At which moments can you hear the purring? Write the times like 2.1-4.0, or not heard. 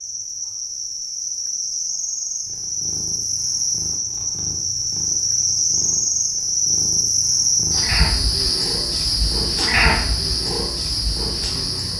2.4-11.9.